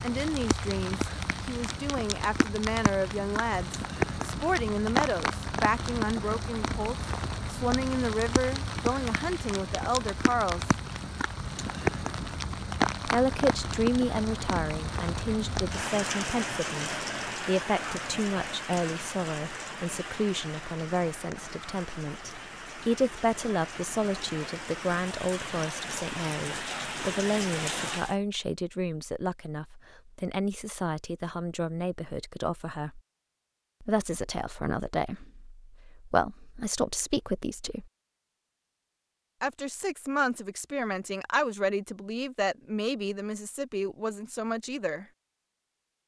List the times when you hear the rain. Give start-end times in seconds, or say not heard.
0.0-28.1.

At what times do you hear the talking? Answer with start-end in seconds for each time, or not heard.
0.0-10.7, 13.1-33.0, 33.8-37.9, 39.4-45.0.